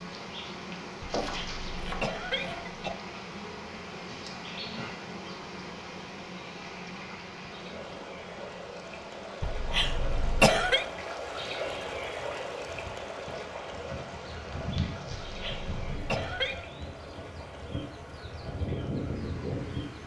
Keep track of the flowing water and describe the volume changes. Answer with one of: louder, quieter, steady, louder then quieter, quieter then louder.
louder then quieter.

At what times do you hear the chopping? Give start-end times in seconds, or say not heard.
1.1-2.6.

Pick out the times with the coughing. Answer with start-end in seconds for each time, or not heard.
1.2-3.0, 9.4-10.8, 15.2-16.6.